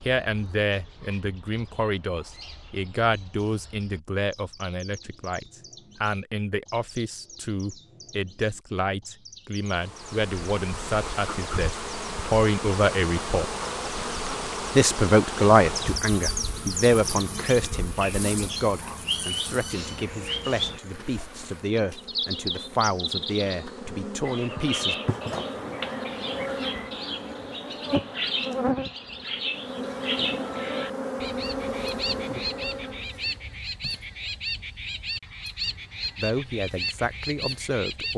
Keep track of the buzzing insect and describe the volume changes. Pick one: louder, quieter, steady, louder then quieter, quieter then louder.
quieter then louder.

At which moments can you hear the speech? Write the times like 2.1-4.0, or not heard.
0.0-13.4, 14.8-24.9, 36.1-38.1.